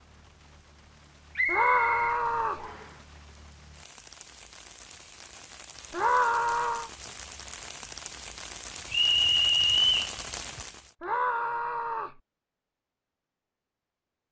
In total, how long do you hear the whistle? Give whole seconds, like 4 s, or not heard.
3 s.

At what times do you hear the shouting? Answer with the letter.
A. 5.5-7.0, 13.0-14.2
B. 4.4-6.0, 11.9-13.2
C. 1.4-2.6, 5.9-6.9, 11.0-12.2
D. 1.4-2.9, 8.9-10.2
C.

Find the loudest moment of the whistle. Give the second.
10 s.